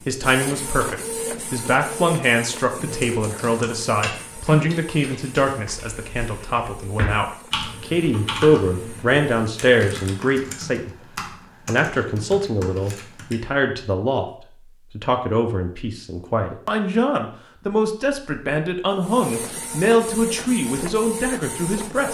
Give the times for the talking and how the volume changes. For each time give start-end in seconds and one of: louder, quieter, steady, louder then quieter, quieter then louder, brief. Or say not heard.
0.1-22.0 steady.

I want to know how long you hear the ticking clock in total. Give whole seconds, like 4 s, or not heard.
not heard.